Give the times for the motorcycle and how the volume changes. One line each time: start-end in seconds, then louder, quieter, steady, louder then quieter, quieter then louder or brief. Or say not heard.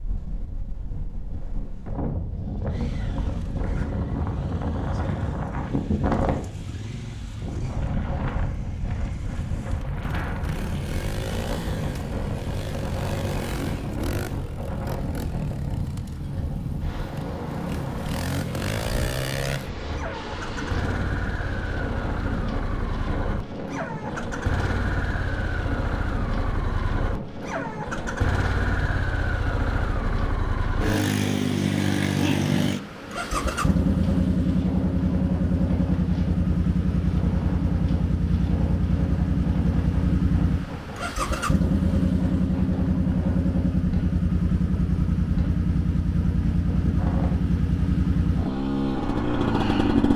2.6-50.1 louder.